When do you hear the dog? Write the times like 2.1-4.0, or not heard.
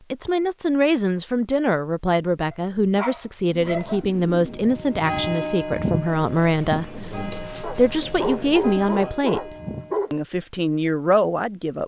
2.5-4.0, 7.6-10.2.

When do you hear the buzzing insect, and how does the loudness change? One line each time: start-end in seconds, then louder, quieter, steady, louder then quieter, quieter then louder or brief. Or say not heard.
not heard.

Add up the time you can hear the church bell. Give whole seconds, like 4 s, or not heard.
6 s.